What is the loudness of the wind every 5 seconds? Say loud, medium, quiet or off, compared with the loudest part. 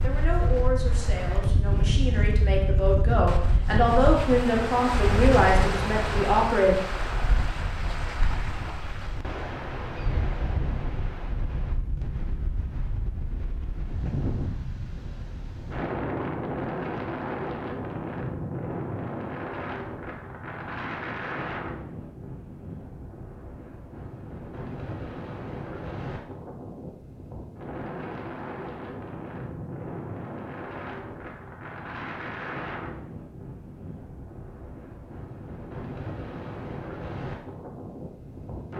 loud, loud, medium, loud, medium, medium, medium, medium.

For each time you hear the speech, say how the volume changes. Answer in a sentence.
You can hear the speech from 0.0 to 6.8 s, getting louder.